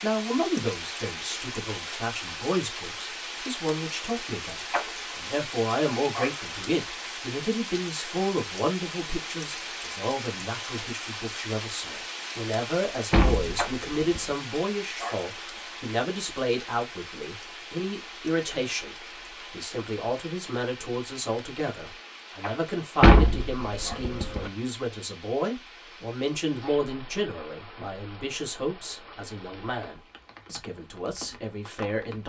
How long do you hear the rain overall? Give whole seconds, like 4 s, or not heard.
32 s.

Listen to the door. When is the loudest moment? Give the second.
23 s.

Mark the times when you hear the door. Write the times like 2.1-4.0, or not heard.
13.1-14.3, 23.0-24.5.